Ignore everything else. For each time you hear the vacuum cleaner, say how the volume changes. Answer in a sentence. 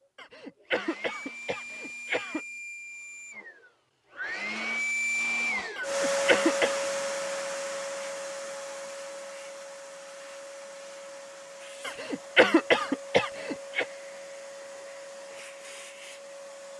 You can hear the vacuum cleaner from 0.0 to 16.7 s, getting louder then quieter.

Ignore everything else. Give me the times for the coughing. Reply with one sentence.
The coughing can be heard from 0.1 to 2.4 s, from 5.8 to 6.8 s and from 11.8 to 13.8 s.